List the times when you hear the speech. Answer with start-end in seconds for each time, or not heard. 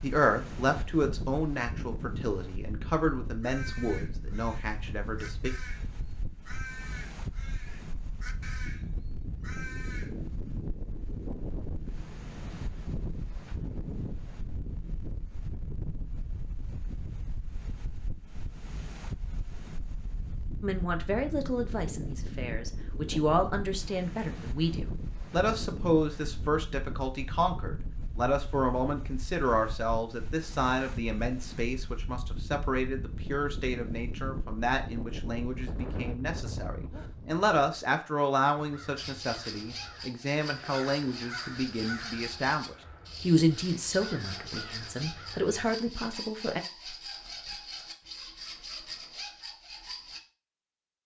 0.0-5.5, 20.6-46.6.